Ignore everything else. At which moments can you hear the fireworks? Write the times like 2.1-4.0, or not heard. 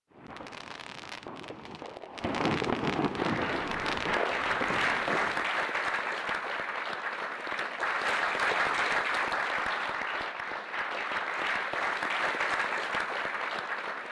0.1-5.5.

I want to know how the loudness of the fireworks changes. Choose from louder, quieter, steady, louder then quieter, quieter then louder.
louder then quieter.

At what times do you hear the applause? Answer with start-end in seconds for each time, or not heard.
3.1-14.0.